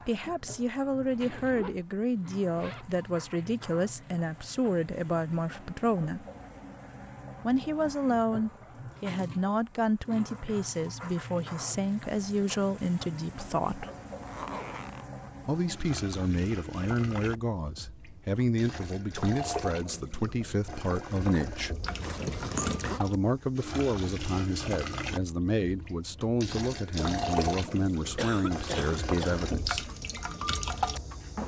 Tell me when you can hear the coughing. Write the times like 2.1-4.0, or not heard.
28.1-29.4.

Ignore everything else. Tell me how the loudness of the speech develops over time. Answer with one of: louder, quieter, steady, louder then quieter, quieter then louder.
steady.